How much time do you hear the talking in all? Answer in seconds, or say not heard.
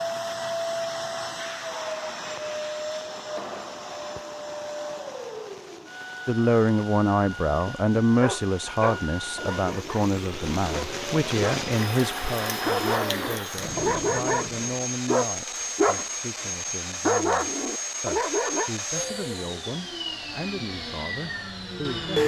16 s.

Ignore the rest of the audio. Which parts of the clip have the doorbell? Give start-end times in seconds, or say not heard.
not heard.